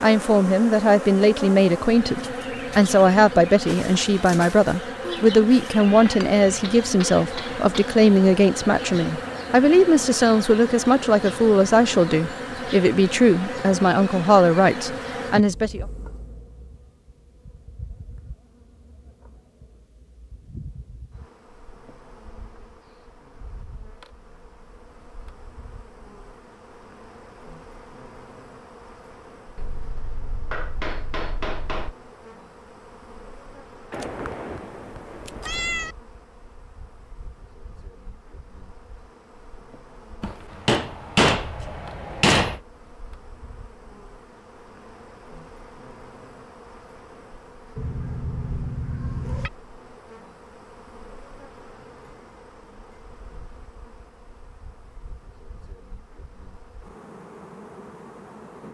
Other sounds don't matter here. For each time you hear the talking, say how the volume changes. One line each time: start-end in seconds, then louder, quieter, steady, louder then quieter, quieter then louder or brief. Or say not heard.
0.0-15.8 steady.